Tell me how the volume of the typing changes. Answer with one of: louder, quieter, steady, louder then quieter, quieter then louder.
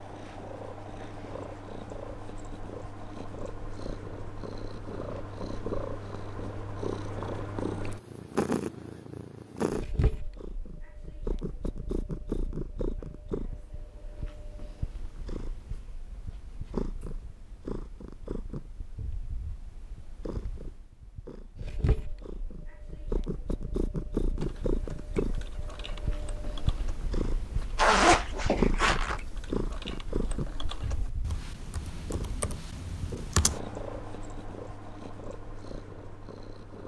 louder.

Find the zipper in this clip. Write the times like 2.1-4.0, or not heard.
27.8-29.2.